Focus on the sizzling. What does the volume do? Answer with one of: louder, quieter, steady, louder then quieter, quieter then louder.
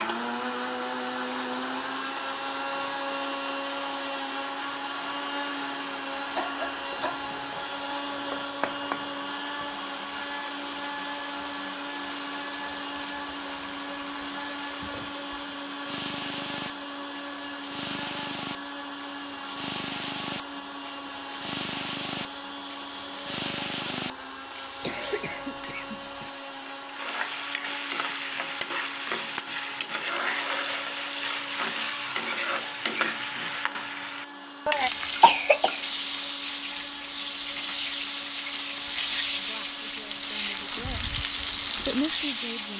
louder.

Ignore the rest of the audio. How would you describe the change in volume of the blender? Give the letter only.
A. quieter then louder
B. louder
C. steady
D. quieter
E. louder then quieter
D.